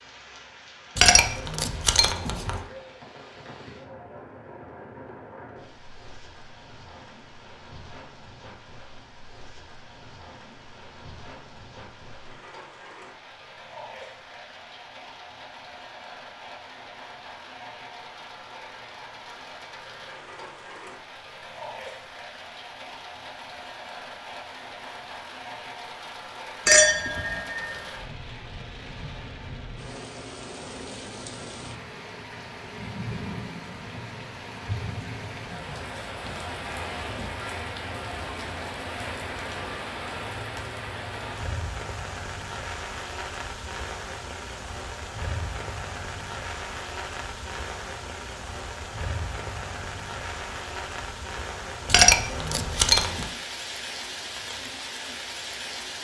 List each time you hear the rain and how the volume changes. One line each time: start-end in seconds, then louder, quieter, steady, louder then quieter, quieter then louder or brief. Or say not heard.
0.0-55.9 louder.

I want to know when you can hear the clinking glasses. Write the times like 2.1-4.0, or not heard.
0.9-2.6, 26.6-27.8, 51.9-53.3.